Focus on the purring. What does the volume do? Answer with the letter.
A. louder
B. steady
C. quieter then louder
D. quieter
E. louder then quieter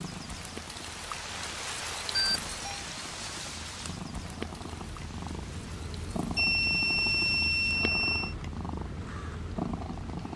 A.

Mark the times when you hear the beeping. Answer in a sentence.
The beeping can be heard from 2.1 to 2.9 s and from 6.3 to 8.3 s.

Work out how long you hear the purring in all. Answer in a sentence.
The purring can be heard for 10 seconds in total.